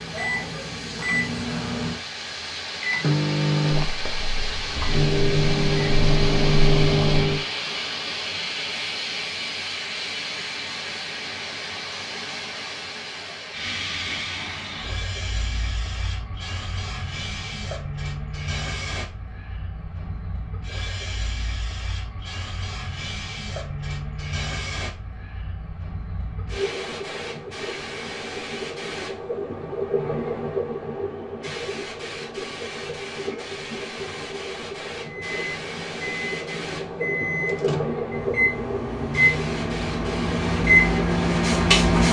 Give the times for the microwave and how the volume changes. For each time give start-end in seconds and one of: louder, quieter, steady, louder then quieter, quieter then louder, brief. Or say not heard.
0.0-7.4 louder
35.0-42.0 louder.